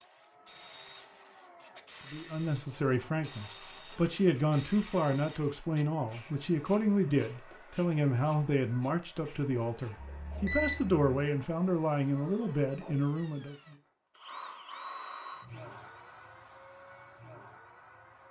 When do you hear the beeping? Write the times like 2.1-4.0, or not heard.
9.9-11.1.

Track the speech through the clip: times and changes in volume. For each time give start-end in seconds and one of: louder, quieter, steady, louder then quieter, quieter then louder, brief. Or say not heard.
2.1-13.6 steady.